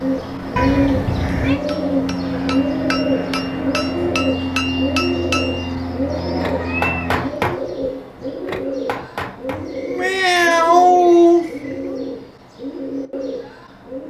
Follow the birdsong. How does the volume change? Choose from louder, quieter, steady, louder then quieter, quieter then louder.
quieter.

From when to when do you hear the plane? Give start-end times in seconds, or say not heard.
0.0-7.4.